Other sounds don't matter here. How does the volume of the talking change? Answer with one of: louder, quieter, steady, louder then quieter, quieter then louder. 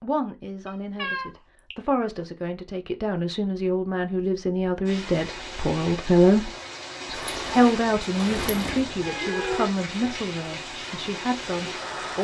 louder then quieter.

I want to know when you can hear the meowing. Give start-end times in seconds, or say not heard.
0.7-1.8, 9.0-9.7.